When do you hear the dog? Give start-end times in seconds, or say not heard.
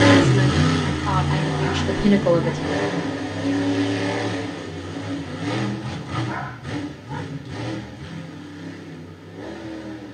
1.6-2.5, 6.2-7.2.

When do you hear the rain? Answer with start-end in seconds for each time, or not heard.
not heard.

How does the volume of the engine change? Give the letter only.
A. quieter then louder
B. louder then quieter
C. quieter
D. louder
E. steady
C.